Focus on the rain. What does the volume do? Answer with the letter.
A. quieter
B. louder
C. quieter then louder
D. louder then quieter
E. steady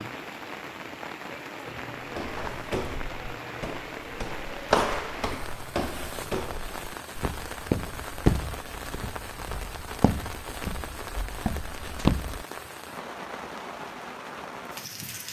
E.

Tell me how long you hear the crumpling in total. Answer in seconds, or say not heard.
2 s.